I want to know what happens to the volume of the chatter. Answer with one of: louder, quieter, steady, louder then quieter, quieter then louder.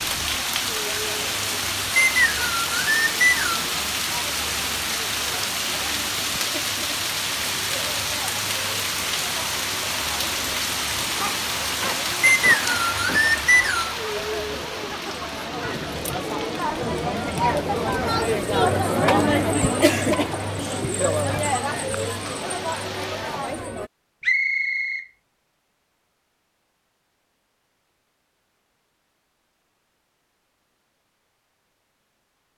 louder.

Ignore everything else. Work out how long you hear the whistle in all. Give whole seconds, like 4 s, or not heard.
4 s.